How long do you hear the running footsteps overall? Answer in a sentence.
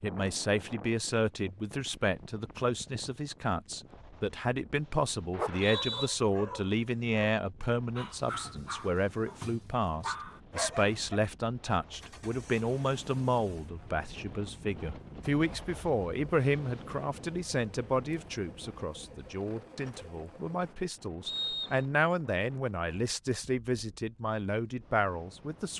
You can't hear the running footsteps here.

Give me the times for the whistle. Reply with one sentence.
The whistle can be heard from 5.3 to 6.1 s and from 21.2 to 21.9 s.